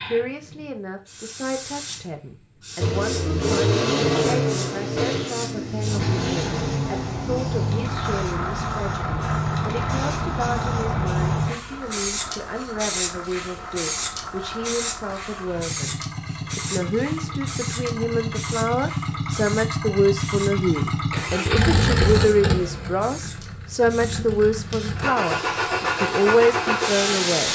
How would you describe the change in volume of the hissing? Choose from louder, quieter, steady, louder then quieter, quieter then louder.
louder then quieter.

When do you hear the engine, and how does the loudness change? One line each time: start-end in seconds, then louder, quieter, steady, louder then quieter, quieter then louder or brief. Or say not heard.
2.8-27.4 quieter then louder.